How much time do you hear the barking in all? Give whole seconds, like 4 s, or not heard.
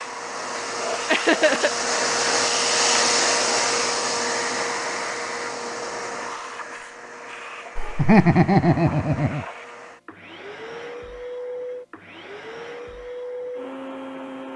not heard.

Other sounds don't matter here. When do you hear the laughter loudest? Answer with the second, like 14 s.
8 s.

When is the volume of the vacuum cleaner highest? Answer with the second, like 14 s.
3 s.